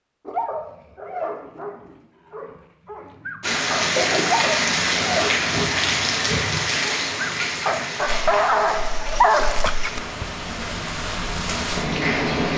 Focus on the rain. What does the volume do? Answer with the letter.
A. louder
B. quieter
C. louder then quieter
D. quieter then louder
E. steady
D.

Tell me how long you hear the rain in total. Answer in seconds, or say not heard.
9 s.